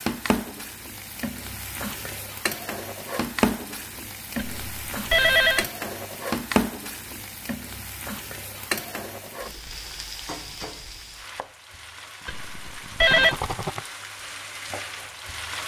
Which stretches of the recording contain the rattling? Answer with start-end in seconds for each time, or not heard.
13.1-13.8.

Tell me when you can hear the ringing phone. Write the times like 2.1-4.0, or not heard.
4.6-5.7, 12.2-13.3.